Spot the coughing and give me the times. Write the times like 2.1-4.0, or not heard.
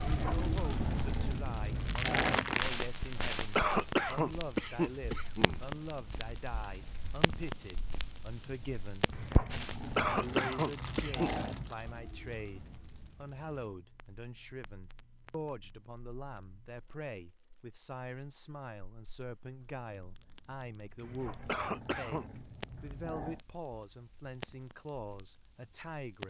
3.5-5.6, 9.9-11.3, 21.4-22.2.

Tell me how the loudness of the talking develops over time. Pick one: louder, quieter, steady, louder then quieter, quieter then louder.
steady.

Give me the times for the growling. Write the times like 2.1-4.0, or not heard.
0.0-2.6, 9.1-11.8, 21.0-23.4.